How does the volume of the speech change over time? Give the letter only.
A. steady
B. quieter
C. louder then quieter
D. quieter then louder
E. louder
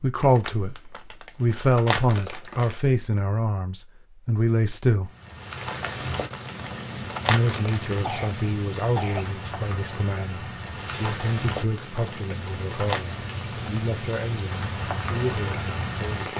B.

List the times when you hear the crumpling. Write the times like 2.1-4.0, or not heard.
0.2-2.8, 5.7-8.1, 11.2-13.0.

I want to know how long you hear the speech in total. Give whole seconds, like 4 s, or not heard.
14 s.